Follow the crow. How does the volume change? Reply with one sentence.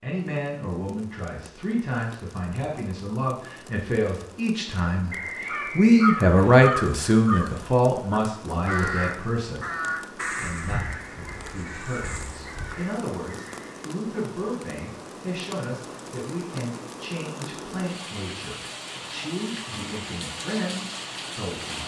The loudness of the crow goes down.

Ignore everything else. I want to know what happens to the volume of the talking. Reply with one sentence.
The volume of the talking goes up, then down.